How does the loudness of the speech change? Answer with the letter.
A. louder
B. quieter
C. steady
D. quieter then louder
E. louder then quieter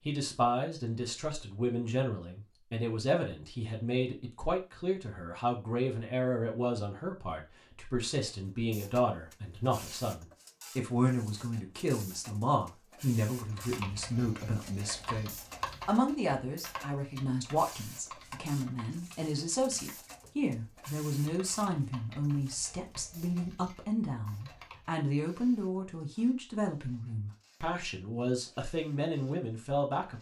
C.